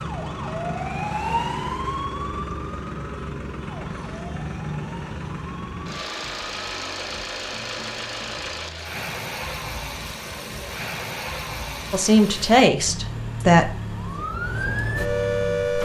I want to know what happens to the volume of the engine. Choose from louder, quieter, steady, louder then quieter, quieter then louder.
steady.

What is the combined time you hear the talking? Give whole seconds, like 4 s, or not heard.
2 s.